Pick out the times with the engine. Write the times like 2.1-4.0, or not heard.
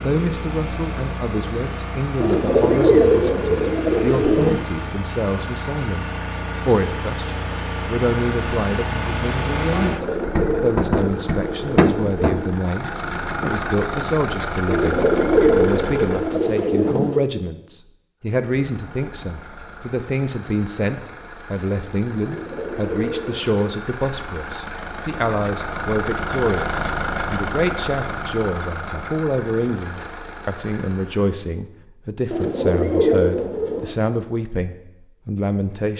0.0-16.5, 18.4-31.4.